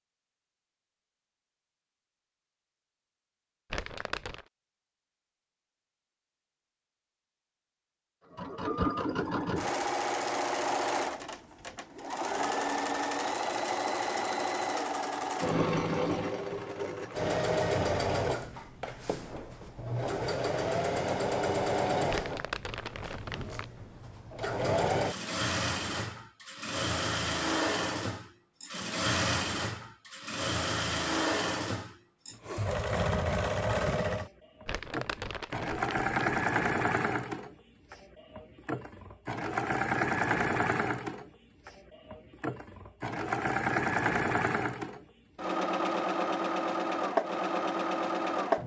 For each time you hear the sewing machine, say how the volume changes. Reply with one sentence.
The sewing machine can be heard from 8.3 to 48.6 s, at a steady volume.